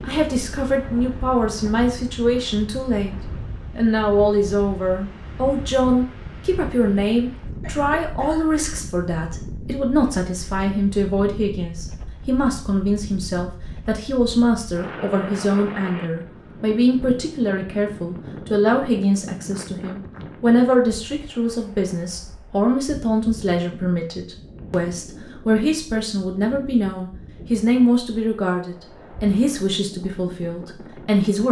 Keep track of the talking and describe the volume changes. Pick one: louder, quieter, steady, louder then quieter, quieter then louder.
steady.